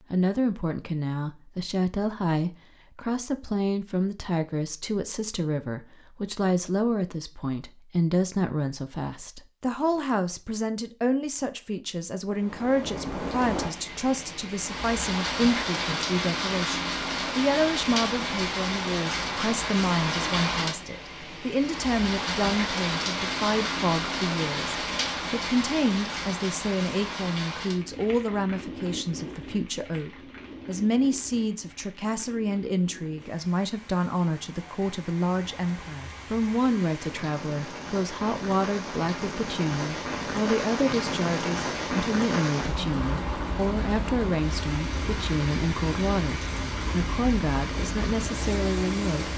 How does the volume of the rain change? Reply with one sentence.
The volume of the rain goes down, then up.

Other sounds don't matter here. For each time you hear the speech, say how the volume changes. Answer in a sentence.
The speech can be heard from 0.1 to 49.3 s, at a steady volume.